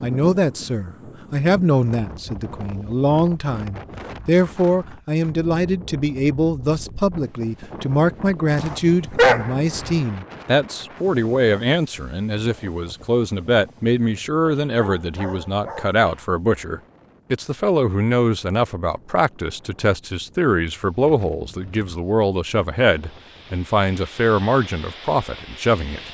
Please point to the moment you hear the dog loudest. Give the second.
9 s.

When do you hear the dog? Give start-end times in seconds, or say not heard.
8.6-10.0, 14.6-16.2.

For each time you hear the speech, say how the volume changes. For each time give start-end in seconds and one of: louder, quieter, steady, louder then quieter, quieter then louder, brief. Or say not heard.
0.0-26.0 steady.